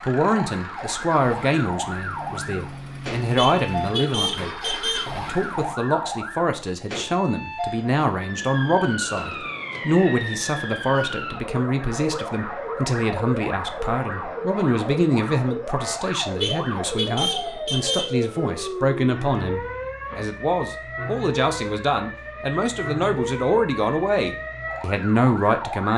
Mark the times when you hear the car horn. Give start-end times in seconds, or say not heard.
3.4-5.1, 16.4-18.1.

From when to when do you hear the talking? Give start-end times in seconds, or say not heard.
0.0-25.9.